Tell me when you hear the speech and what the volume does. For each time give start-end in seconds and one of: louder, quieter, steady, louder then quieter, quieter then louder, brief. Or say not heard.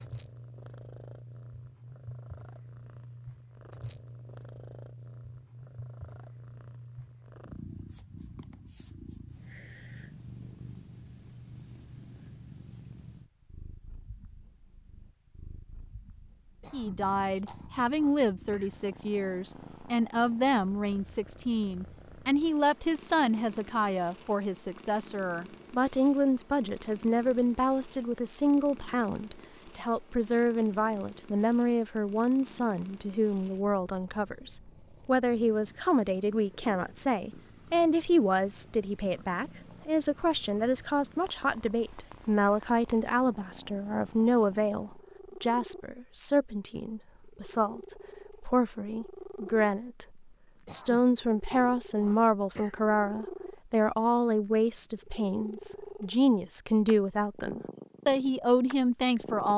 16.7-59.5 steady.